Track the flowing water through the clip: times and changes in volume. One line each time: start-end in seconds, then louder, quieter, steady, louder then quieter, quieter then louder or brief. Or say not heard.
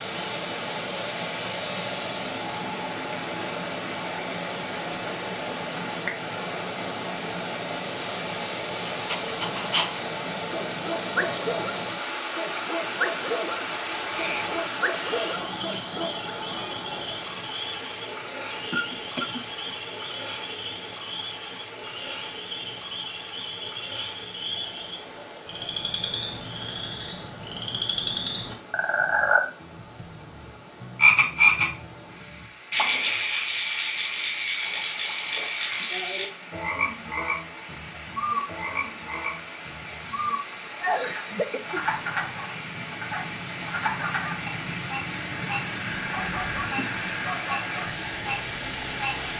0.0-49.3 quieter then louder.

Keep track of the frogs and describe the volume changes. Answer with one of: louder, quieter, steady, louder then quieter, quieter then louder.
louder then quieter.